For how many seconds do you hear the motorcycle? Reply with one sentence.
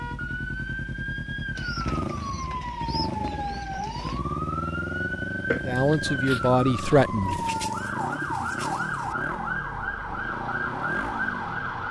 You can hear the motorcycle for 12 seconds altogether.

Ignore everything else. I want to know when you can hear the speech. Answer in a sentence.
The speech can be heard from 5.7 to 7.5 s.